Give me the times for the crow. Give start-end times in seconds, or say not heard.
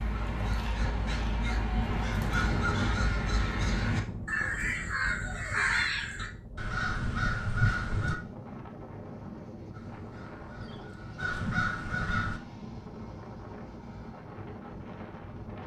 0.0-8.2, 9.7-12.4.